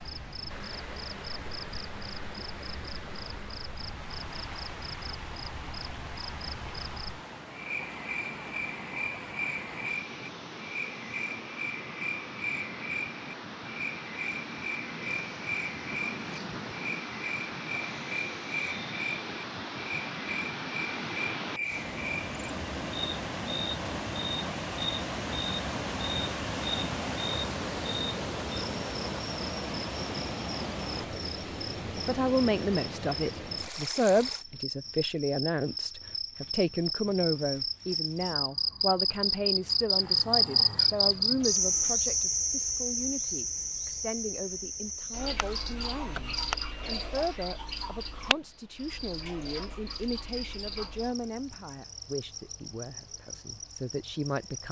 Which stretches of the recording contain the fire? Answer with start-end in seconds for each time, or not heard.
not heard.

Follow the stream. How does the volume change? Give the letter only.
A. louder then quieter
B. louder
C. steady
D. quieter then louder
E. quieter
B.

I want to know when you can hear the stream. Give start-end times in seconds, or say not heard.
0.0-34.5.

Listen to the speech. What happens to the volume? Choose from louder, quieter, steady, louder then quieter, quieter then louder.
quieter.